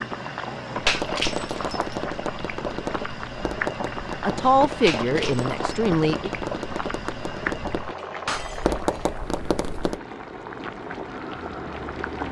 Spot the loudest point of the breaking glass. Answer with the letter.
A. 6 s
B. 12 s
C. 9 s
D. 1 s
D.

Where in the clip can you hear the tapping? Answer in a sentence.
The tapping can be heard from 0.8 to 10.0 s.